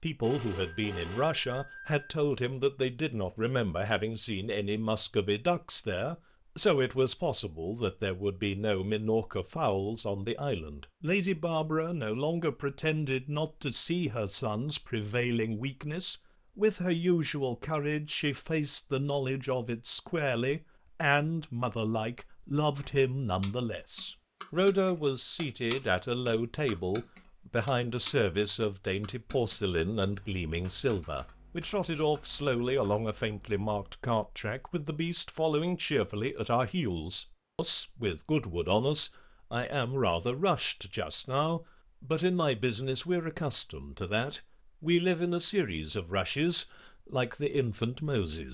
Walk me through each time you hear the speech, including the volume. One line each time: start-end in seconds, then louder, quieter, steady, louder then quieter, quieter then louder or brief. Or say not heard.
0.0-48.4 steady.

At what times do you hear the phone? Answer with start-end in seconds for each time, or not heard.
0.2-2.0.